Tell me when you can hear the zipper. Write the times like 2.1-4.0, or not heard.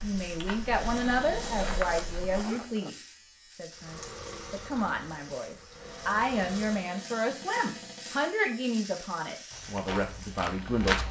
1.4-2.9.